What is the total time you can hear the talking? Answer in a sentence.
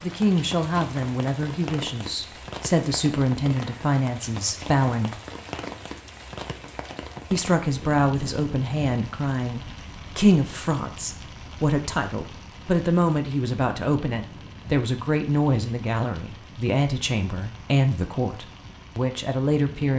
You can hear the talking for 18 seconds altogether.